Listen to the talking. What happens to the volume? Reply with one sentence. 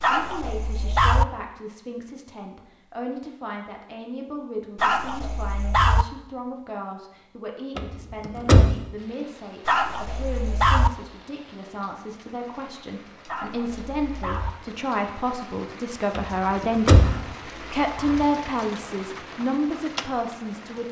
The loudness of the talking goes up.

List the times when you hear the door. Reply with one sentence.
The door can be heard from 7.8 to 8.8 s and from 16.1 to 17.3 s.